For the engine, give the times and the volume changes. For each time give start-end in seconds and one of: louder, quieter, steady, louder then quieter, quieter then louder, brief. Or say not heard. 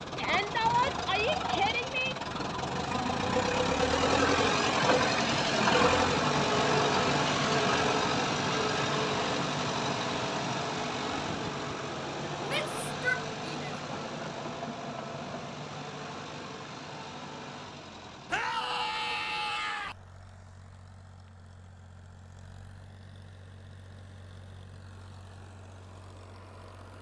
0.0-26.9 quieter.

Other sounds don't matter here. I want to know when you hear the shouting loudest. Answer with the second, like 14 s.
1 s.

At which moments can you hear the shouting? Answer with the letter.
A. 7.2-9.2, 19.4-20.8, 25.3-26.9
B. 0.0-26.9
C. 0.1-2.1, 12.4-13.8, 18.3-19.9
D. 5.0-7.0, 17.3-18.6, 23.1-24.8
C.